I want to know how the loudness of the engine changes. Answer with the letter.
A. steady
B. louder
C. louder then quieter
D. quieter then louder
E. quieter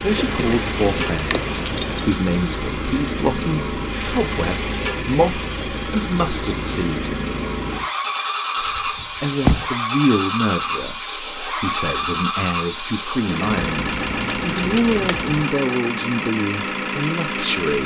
A.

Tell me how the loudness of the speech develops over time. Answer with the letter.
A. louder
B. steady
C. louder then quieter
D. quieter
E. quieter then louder
B.